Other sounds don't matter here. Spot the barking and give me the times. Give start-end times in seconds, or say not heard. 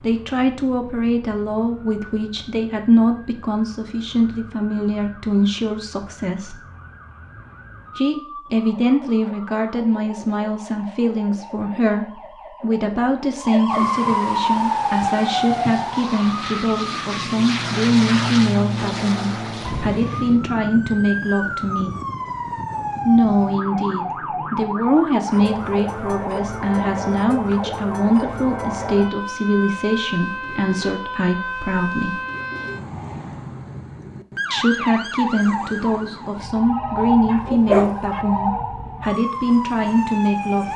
37.2-38.2.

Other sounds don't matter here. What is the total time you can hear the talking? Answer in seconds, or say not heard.
36 s.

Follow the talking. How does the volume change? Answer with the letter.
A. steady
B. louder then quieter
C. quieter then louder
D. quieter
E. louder
A.